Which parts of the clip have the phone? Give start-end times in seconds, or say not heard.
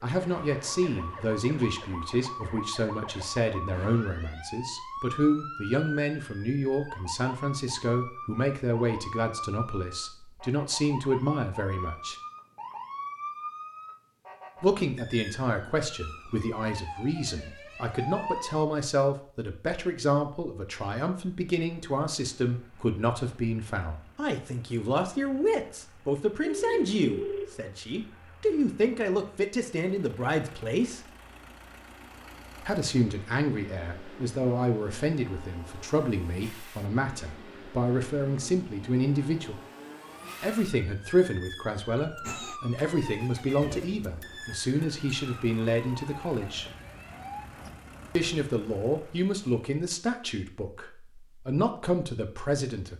26.4-27.6.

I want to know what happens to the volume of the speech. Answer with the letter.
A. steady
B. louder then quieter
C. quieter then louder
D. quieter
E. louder
A.